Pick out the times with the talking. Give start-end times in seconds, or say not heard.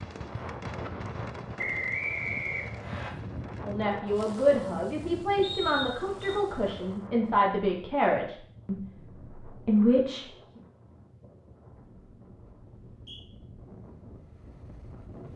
3.6-10.2.